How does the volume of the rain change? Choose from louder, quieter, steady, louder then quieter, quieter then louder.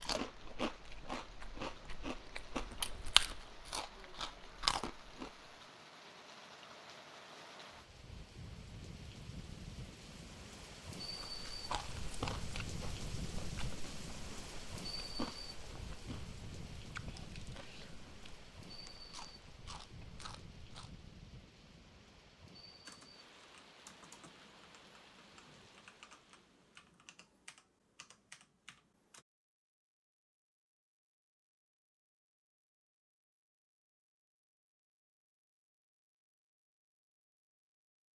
louder then quieter.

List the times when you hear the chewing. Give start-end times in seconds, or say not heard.
0.0-5.5, 11.0-21.1.